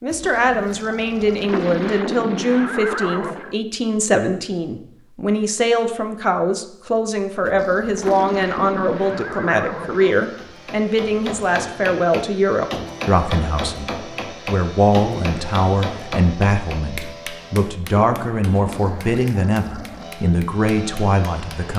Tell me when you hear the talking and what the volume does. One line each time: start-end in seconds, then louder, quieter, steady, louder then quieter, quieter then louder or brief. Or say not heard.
0.0-21.7 steady.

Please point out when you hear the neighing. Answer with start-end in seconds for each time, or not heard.
1.4-3.5, 7.9-10.2, 17.8-19.1.